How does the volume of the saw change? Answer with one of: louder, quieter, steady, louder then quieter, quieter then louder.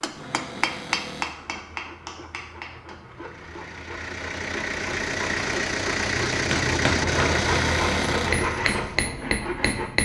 louder.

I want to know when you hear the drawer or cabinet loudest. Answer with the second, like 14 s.
8 s.